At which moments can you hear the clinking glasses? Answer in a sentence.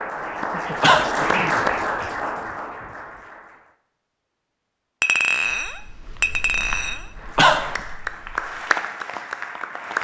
The clinking glasses can be heard from 5.0 to 7.0 s.